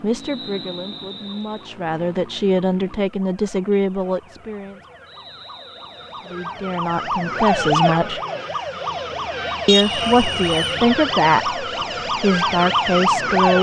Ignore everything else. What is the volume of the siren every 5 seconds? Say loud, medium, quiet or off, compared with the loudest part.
quiet, loud, loud.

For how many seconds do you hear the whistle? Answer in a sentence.
You can hear the whistle for 4 seconds altogether.